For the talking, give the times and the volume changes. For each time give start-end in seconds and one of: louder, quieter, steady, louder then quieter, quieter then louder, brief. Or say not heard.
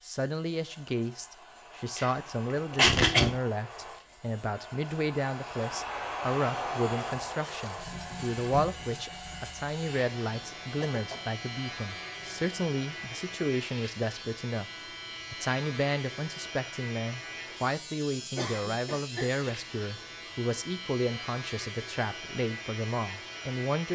0.0-14.7 steady
15.3-23.9 steady.